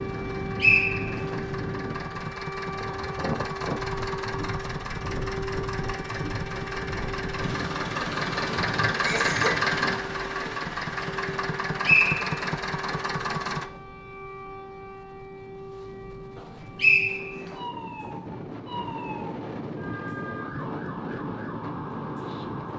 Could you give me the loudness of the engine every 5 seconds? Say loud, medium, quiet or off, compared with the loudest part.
medium, loud, loud, off, off.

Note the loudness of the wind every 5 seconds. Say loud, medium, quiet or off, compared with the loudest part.
loud, loud, medium, medium, loud.